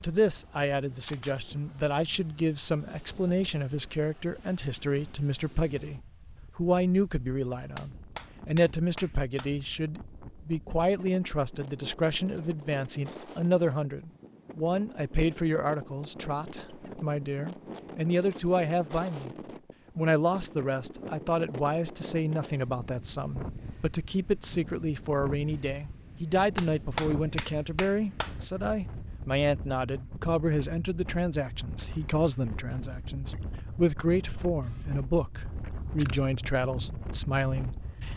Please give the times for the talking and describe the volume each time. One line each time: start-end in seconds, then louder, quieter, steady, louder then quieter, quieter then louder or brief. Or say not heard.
0.0-19.3 steady
19.9-38.1 steady.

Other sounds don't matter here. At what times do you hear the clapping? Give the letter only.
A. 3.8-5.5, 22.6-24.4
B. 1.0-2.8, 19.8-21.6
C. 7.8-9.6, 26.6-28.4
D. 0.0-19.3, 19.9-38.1
C.